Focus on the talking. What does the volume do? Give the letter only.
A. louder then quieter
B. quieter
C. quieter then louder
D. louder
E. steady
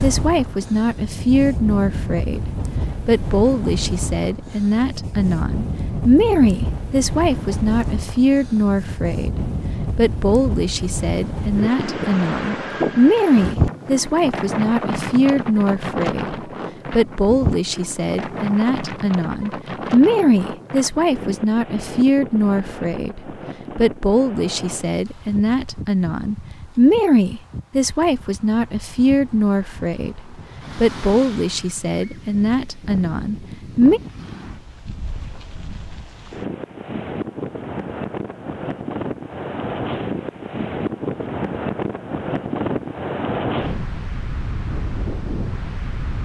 E.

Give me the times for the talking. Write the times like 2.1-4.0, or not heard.
0.0-34.0.